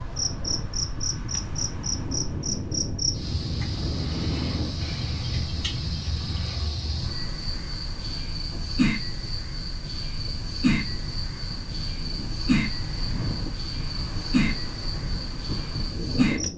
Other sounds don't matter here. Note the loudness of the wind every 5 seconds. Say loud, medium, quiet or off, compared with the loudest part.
loud, medium, medium, loud.